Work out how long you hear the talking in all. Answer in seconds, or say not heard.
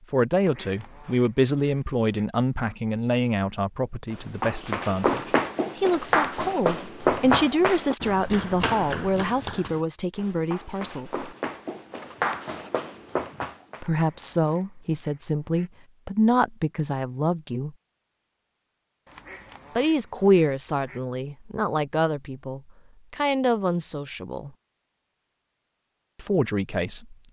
21 s.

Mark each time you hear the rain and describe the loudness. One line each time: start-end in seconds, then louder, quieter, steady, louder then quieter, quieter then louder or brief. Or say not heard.
not heard.